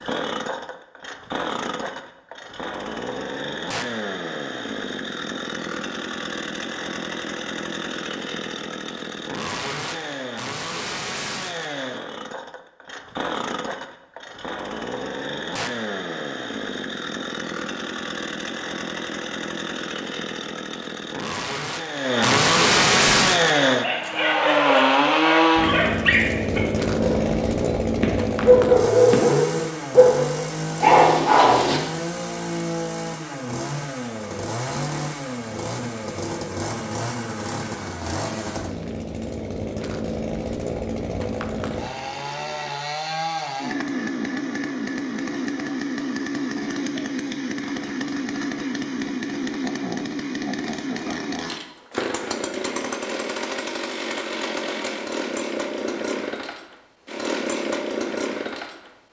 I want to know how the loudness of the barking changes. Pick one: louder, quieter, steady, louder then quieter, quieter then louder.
louder.